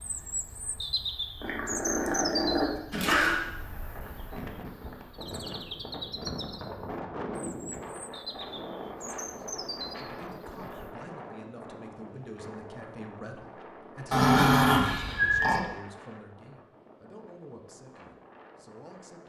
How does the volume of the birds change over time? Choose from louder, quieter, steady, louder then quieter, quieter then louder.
quieter.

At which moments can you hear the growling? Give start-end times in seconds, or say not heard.
1.4-3.4, 14.1-15.6.